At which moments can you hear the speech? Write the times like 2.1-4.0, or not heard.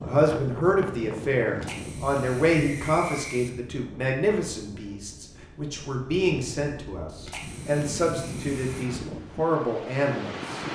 0.0-10.6.